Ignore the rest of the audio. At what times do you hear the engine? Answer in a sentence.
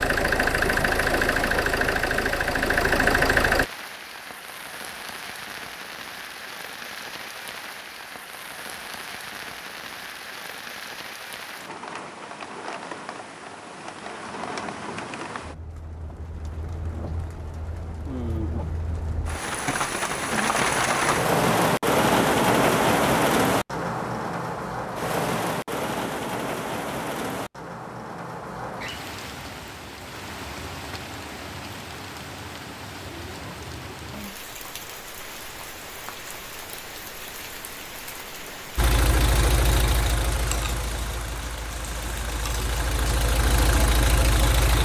The engine can be heard from 0.0 to 3.6 s and from 38.8 to 44.8 s.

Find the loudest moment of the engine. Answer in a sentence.
The loudest moment of the engine is at 3 seconds.